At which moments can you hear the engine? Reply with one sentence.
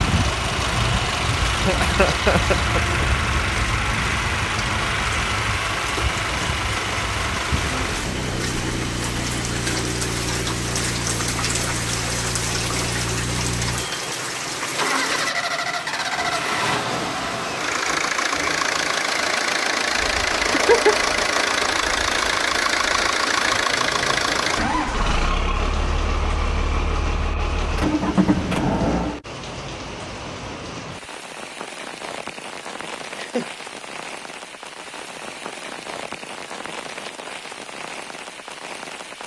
You can hear the engine from 0.0 to 29.2 s.